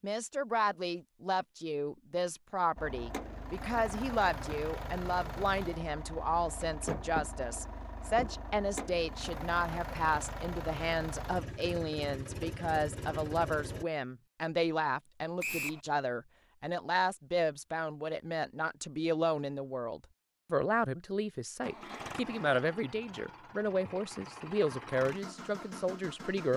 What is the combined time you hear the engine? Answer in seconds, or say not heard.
16 s.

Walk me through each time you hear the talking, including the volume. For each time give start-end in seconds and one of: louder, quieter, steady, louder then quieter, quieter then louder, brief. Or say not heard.
0.0-26.5 steady.